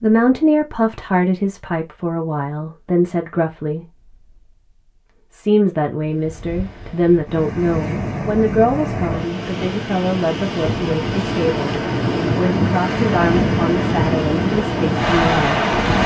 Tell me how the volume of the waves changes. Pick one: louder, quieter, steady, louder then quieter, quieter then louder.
louder.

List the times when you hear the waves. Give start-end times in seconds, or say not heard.
6.0-16.0.